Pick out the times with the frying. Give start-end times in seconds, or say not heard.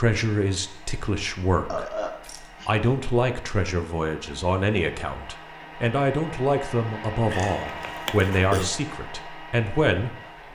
not heard.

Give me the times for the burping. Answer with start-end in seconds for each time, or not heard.
1.7-2.9, 7.3-8.7.